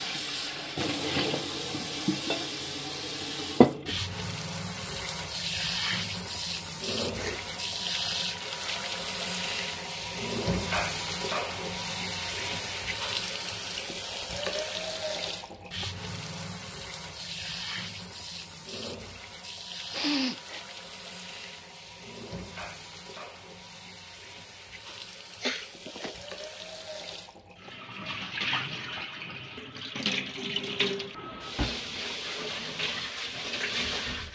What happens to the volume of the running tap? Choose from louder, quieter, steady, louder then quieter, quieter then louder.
quieter then louder.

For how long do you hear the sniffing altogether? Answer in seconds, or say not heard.
3 s.